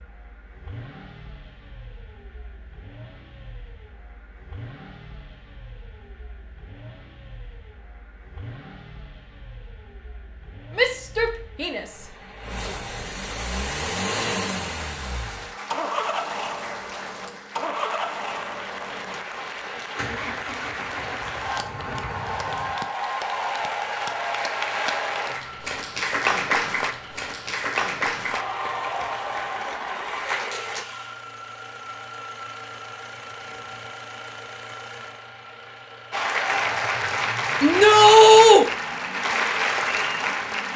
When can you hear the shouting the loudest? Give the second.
38 s.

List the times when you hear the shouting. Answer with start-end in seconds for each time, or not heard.
10.8-11.8, 37.6-38.6.